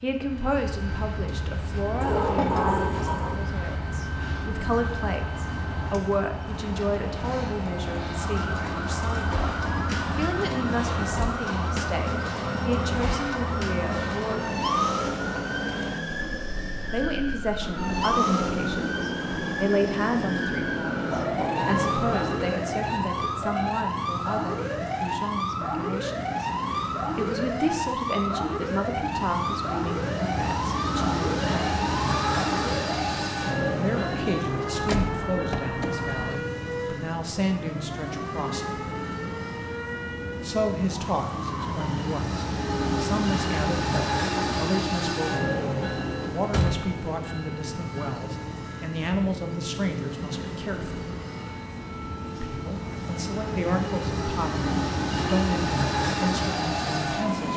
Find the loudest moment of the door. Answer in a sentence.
The volume of the door peaks at 3 seconds.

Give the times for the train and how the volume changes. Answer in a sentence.
The train can be heard from 0.0 to 57.5 s, at a steady volume.